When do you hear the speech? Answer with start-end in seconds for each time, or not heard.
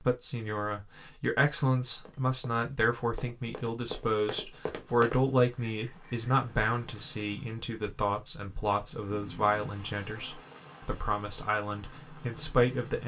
0.1-13.0.